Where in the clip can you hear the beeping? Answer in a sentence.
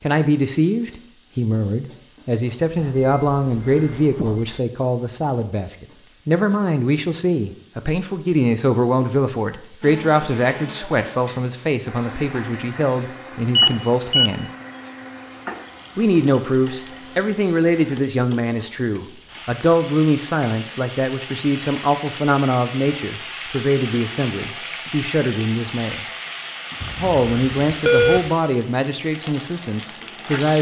The beeping can be heard from 2.8 to 4.6 s, from 13.6 to 14.3 s and from 26.8 to 28.2 s.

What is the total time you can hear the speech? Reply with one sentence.
You can hear the speech for 28 seconds altogether.